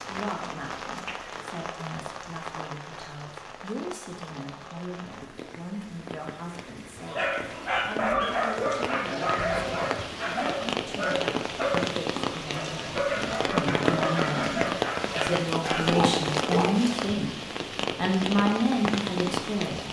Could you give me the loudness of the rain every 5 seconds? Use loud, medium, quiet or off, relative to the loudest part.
medium, medium, loud, loud.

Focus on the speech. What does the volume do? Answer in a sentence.
The loudness of the speech goes up.